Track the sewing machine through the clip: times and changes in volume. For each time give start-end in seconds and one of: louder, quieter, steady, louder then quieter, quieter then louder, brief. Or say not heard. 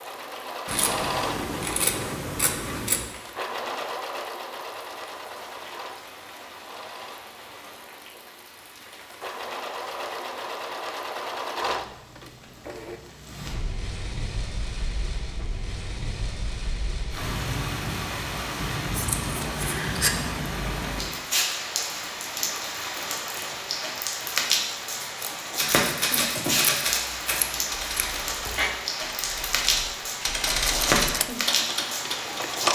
0.0-13.0 quieter then louder
30.3-32.7 brief.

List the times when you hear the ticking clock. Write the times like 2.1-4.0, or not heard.
not heard.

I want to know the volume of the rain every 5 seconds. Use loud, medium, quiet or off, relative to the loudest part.
quiet, quiet, quiet, medium, loud, loud, loud.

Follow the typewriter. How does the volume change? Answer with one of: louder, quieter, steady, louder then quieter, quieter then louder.
quieter then louder.